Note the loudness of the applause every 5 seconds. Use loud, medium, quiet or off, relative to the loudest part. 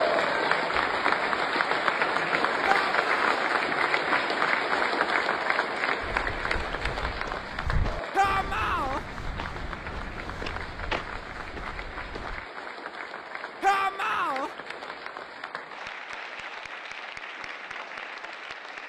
loud, medium, quiet, quiet.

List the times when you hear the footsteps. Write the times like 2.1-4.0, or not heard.
6.0-12.4.